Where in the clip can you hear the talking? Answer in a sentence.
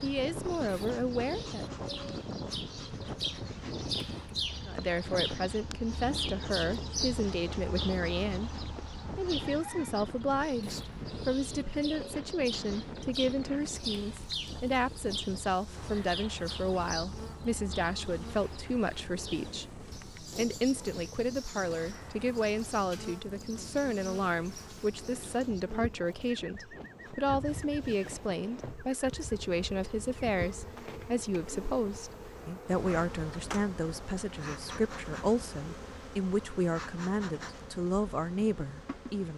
You can hear the talking from 0.0 to 1.6 s and from 4.7 to 39.3 s.